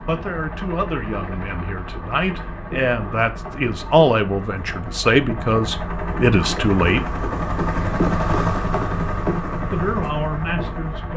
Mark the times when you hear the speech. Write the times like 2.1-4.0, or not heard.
0.1-7.2, 9.7-11.1.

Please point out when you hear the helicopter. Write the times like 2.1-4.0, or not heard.
0.0-11.1.